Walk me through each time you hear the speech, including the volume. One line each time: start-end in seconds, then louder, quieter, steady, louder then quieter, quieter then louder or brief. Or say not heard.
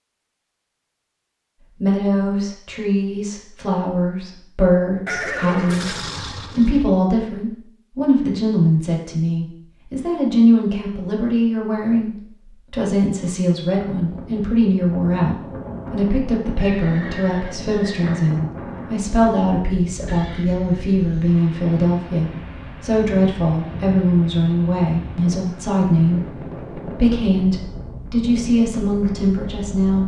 1.8-30.0 steady.